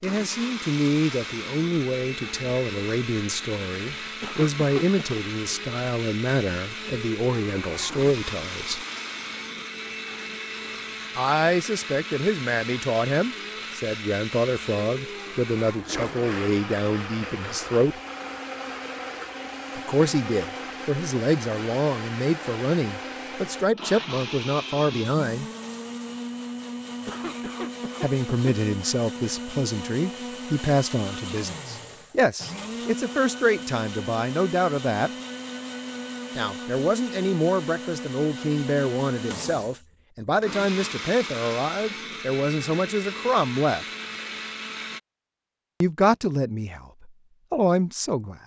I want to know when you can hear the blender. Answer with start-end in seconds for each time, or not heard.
0.0-45.0.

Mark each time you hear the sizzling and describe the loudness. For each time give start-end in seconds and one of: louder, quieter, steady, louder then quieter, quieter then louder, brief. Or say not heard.
not heard.